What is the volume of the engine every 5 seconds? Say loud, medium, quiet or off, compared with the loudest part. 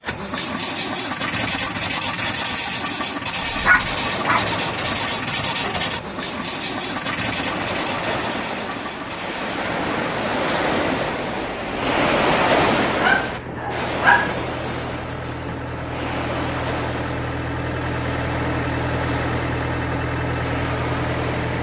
loud, loud, medium, loud, loud.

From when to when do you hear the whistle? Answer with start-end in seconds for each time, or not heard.
not heard.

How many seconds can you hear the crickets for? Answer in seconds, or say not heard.
not heard.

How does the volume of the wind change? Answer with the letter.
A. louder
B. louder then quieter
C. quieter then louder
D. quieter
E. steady
B.